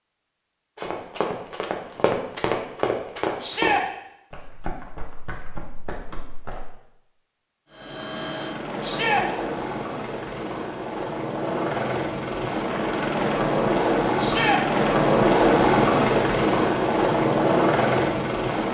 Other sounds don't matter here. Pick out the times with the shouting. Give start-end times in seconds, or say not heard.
3.4-3.9, 8.8-9.2, 14.2-14.6.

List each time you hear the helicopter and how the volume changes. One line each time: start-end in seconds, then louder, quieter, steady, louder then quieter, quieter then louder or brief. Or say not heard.
7.7-18.6 louder.